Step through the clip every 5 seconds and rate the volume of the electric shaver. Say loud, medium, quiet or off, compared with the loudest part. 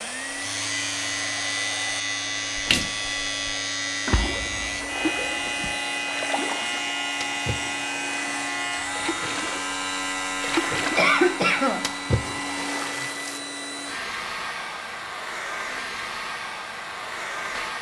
loud, loud, medium, quiet.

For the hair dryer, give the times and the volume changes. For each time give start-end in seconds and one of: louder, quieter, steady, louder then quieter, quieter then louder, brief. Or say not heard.
0.0-17.7 steady.